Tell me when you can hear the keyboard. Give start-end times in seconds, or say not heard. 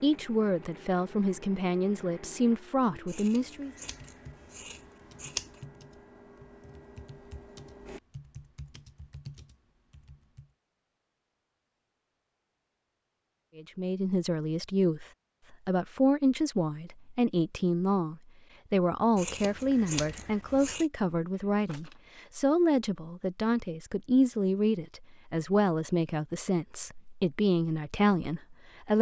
3.9-10.5.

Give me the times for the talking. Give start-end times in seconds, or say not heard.
0.0-3.7, 13.6-15.1, 15.7-28.9.